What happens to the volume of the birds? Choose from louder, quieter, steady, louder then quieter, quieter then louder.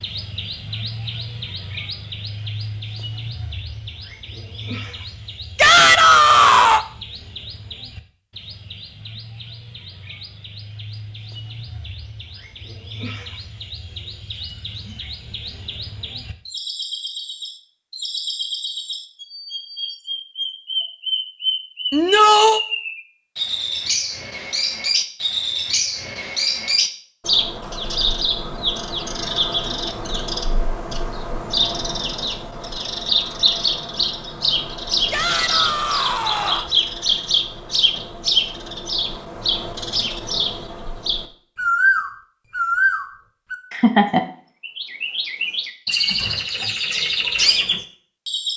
louder.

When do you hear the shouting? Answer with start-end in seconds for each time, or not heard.
5.5-6.8, 21.9-22.6, 35.1-36.7.